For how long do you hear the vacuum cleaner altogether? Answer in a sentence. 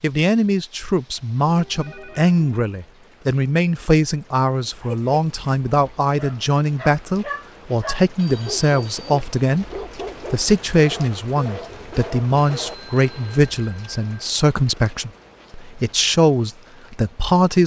You can't hear the vacuum cleaner here.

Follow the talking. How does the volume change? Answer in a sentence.
The volume of the talking stays about the same.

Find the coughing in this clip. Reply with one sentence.
The coughing can't be heard in this clip.